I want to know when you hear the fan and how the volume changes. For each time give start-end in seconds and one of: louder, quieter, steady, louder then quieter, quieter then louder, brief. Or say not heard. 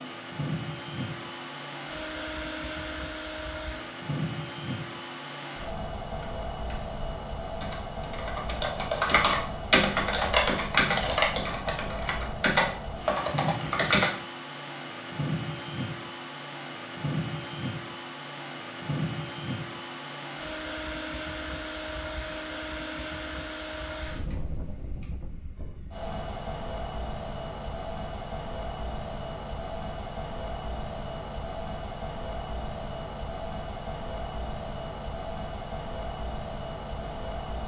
0.0-37.6 steady.